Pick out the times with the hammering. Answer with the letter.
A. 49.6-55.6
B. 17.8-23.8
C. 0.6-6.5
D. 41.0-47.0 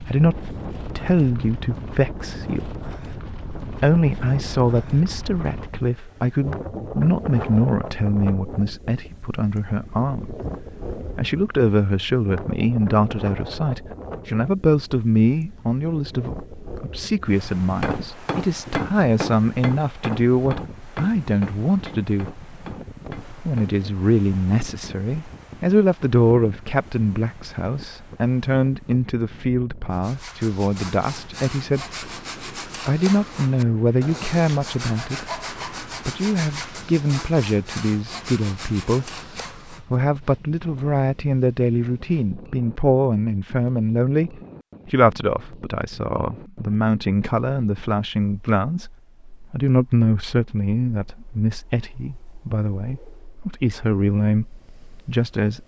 B.